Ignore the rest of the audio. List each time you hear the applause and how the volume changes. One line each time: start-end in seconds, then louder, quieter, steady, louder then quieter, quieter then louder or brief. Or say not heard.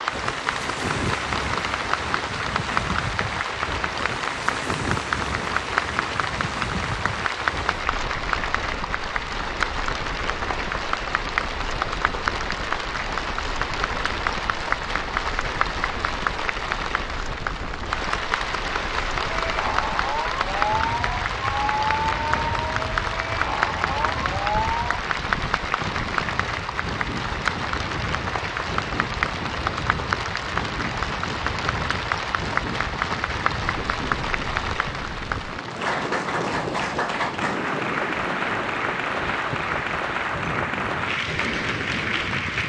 0.0-42.6 steady.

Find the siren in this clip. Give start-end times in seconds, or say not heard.
19.2-25.0.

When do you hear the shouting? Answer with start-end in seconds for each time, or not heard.
not heard.